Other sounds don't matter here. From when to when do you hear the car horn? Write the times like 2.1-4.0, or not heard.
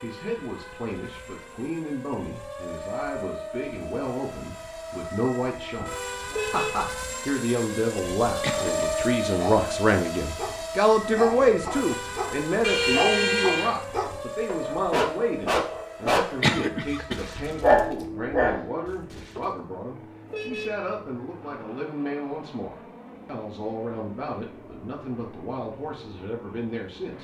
6.3-6.9, 12.6-13.8, 20.2-20.9.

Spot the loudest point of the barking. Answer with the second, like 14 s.
18 s.